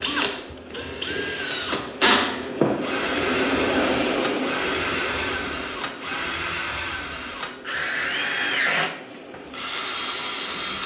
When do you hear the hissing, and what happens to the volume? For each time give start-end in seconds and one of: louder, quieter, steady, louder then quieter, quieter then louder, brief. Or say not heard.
0.2-10.8 louder then quieter.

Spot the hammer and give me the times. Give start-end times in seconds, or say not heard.
not heard.